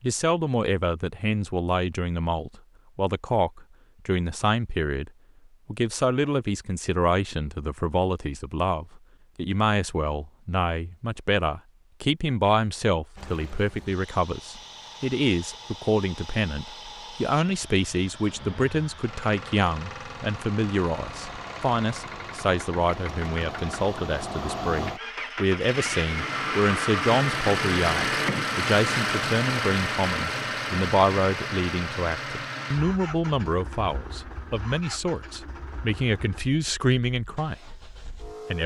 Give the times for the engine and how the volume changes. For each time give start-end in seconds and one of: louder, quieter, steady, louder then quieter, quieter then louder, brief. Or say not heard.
13.2-38.6 louder then quieter.